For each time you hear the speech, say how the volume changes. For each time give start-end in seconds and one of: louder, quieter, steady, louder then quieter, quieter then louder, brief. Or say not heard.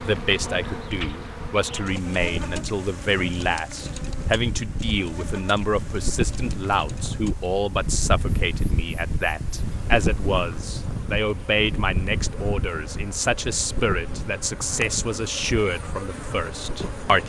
0.0-17.2 steady.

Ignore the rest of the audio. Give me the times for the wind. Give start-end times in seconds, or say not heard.
0.0-17.2.